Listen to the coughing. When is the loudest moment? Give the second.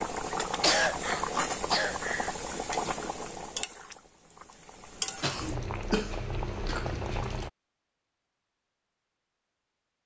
1 s.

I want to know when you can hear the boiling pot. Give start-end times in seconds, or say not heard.
0.0-7.5.